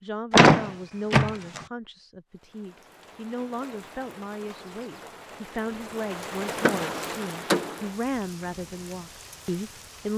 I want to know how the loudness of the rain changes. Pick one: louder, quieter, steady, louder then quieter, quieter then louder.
louder then quieter.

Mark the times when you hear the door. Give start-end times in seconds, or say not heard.
0.3-1.6, 6.5-7.9.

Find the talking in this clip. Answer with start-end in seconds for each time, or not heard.
0.0-10.1.